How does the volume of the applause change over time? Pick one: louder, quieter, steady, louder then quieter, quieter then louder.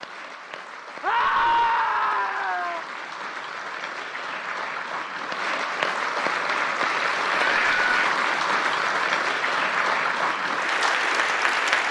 louder.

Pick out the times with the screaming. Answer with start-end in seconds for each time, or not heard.
1.0-2.9, 7.3-8.1.